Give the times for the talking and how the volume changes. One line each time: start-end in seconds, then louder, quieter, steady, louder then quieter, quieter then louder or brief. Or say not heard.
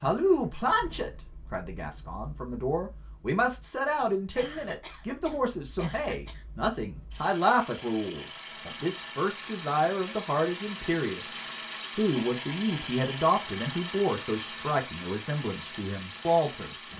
0.0-16.8 steady.